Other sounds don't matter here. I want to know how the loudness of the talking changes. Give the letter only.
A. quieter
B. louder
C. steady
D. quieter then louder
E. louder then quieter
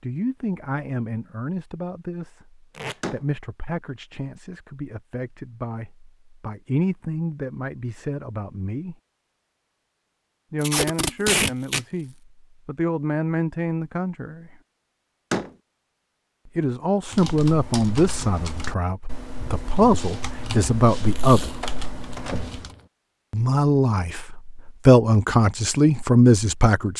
B.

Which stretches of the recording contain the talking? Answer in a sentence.
You can hear the talking from 0.0 to 8.9 s, from 10.5 to 14.5 s, from 16.6 to 21.5 s and from 23.3 to 26.9 s.